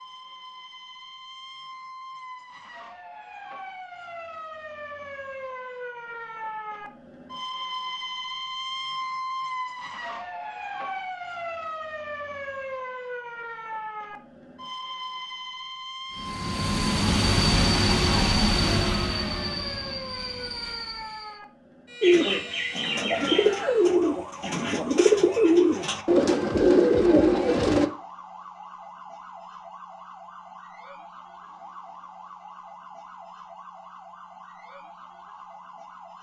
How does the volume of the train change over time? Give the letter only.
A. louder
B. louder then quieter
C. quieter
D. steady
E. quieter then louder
C.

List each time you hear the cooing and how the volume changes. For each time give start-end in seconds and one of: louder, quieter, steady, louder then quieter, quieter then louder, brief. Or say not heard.
22.0-27.9 louder.